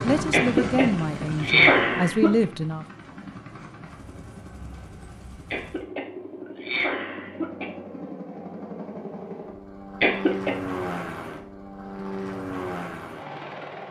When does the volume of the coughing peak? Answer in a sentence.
The volume of the coughing peaks at 2 seconds.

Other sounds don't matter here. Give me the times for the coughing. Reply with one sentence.
You can hear the coughing from 0.3 to 2.3 s, from 5.5 to 7.7 s and from 10.0 to 10.6 s.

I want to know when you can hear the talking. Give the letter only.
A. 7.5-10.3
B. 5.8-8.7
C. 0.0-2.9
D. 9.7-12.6
C.